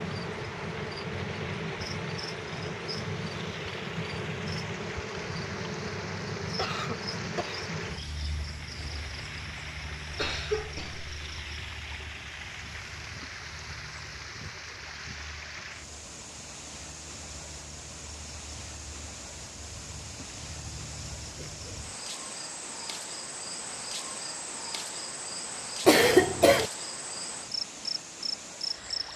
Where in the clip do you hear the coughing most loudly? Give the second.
26 s.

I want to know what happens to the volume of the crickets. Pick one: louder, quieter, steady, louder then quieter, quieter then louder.
quieter then louder.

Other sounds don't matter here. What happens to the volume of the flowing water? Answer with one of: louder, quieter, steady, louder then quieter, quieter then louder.
steady.